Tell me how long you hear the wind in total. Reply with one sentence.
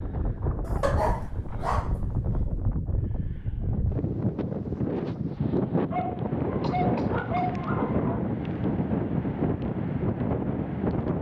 The wind can be heard for 11 seconds in total.